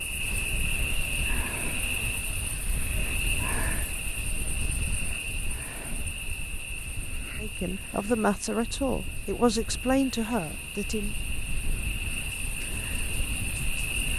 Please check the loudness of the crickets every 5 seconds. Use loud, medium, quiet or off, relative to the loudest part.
loud, medium, loud.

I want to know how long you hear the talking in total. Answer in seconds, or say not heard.
4 s.